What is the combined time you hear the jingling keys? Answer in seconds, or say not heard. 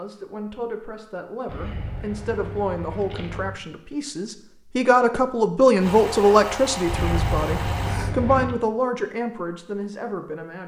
4 s.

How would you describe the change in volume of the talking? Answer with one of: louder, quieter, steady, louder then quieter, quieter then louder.
louder then quieter.